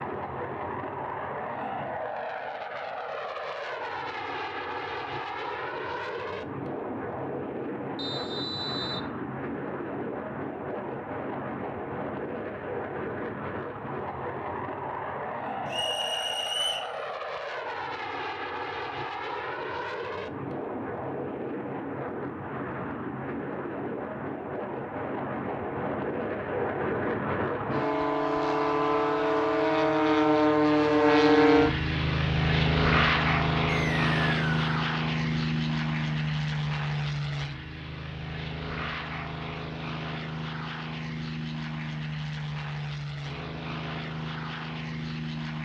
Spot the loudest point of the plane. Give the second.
31 s.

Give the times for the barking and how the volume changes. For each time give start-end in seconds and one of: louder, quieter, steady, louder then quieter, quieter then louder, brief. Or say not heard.
not heard.